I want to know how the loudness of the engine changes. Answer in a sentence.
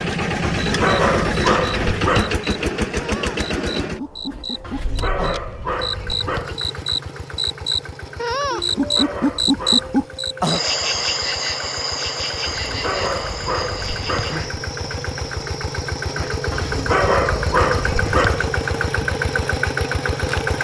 The loudness of the engine goes down, then up.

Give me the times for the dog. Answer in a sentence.
You can hear the dog from 0.6 to 2.5 s, from 4.6 to 6.6 s, from 8.6 to 10.1 s, from 12.4 to 14.4 s and from 16.5 to 18.6 s.